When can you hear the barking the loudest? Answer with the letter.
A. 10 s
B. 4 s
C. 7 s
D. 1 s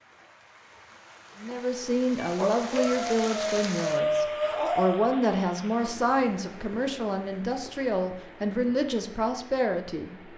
B.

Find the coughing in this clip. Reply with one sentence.
The coughing can't be heard in this clip.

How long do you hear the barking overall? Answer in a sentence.
The barking can be heard for 3 seconds in total.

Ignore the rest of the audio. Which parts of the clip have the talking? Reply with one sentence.
You can hear the talking from 1.4 to 10.2 s.